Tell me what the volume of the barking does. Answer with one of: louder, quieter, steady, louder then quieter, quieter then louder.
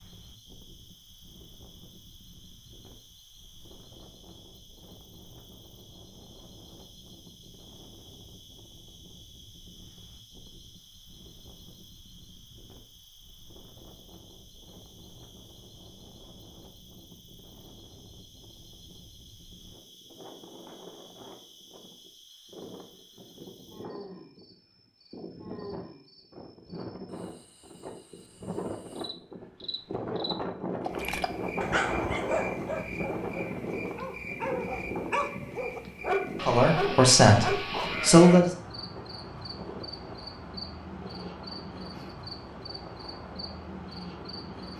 quieter then louder.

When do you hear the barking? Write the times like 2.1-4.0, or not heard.
30.9-37.9.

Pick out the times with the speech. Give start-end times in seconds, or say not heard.
36.5-38.5.